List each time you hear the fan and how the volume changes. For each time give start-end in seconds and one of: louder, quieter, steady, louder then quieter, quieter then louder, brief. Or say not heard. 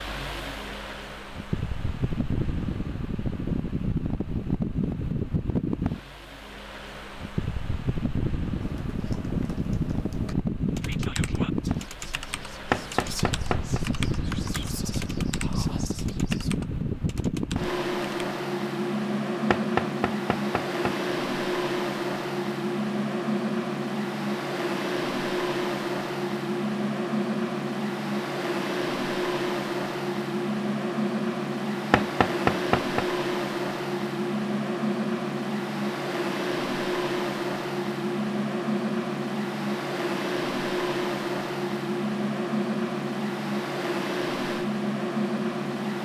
0.0-46.0 steady.